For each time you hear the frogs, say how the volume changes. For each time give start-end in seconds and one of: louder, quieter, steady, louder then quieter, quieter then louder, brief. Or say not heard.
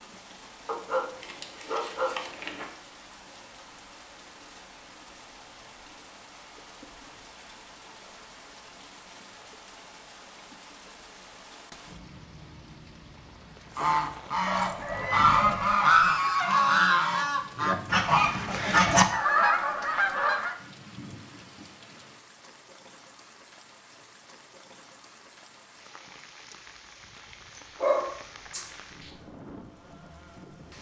not heard.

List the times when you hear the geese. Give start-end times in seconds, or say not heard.
13.8-20.6.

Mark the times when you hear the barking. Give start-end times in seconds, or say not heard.
0.7-2.7, 14.4-16.1, 27.6-29.1.